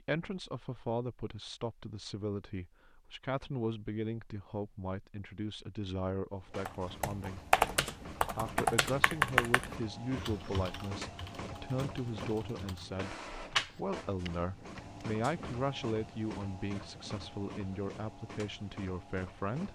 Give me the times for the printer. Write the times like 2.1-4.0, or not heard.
6.3-19.7.